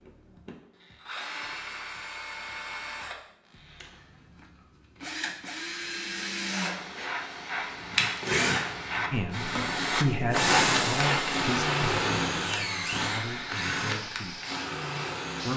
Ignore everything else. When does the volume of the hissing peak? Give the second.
11 s.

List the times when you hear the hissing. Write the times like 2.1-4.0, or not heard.
6.4-15.5.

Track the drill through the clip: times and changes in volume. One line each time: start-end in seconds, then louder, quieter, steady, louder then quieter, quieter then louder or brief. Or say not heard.
0.0-15.5 louder.